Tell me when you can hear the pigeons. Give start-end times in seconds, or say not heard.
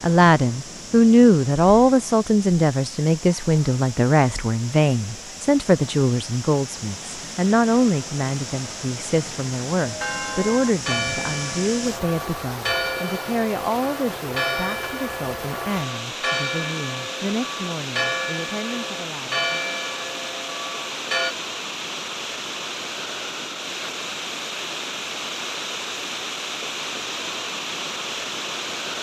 not heard.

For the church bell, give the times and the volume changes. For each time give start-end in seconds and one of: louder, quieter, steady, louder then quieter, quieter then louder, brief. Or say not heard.
9.8-21.4 steady.